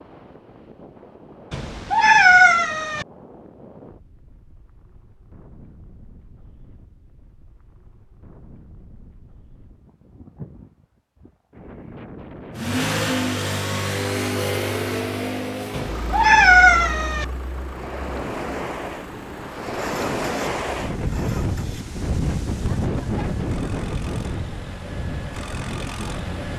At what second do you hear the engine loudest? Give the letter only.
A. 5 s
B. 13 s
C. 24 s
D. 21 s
B.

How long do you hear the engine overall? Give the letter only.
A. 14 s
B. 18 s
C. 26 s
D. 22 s
A.